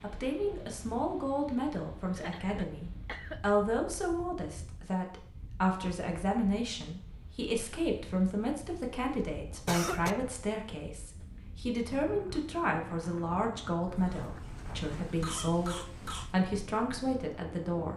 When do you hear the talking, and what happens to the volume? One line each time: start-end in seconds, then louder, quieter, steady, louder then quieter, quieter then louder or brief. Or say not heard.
0.0-17.9 steady.